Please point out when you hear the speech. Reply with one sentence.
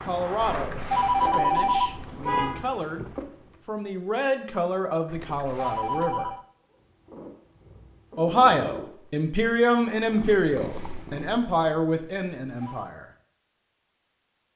The speech can be heard from 0.0 to 3.0 s, from 3.6 to 6.3 s and from 8.2 to 13.1 s.